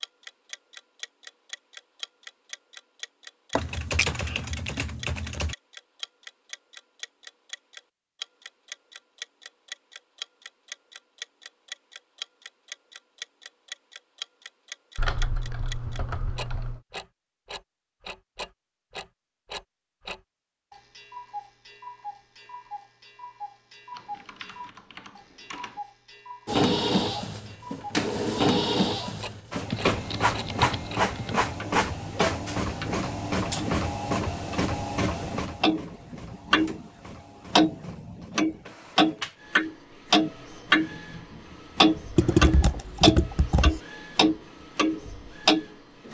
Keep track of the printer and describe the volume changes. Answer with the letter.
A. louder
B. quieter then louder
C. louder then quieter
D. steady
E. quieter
E.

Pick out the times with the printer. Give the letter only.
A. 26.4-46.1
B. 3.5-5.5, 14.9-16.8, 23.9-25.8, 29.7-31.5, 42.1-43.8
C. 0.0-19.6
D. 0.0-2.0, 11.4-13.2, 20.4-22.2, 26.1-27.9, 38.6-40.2
A.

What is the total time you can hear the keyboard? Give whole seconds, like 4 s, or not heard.
9 s.